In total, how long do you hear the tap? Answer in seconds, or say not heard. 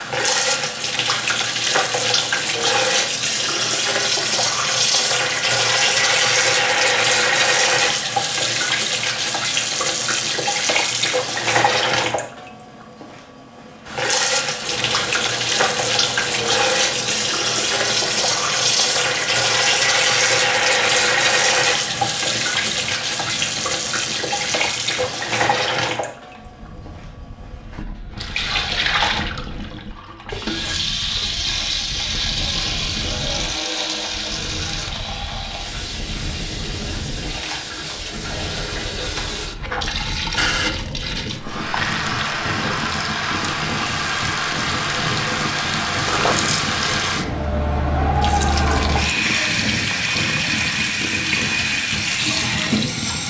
53 s.